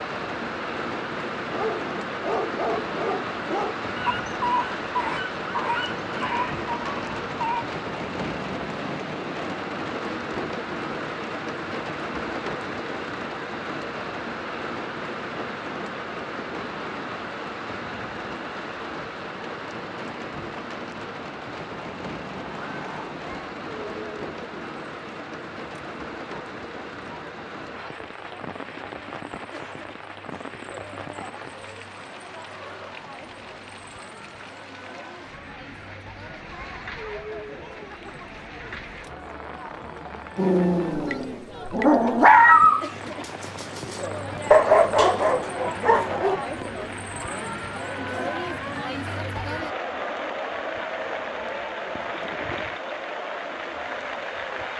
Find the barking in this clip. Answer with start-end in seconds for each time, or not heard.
1.6-7.7, 40.4-46.4.